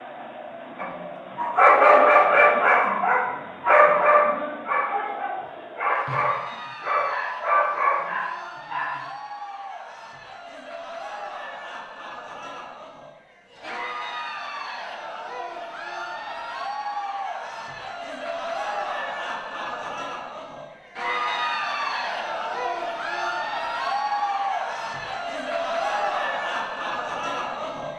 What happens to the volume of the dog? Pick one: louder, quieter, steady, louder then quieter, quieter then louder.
quieter.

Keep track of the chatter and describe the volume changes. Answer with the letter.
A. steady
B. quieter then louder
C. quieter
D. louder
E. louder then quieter
D.